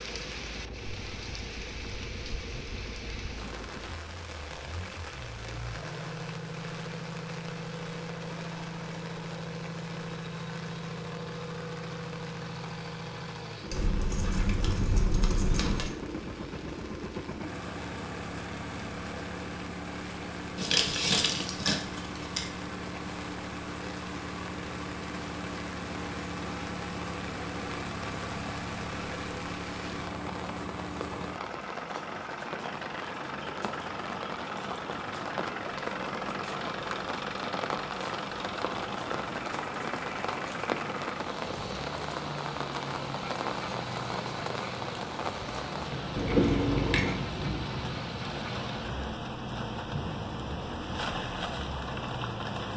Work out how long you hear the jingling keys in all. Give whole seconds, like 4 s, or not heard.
5 s.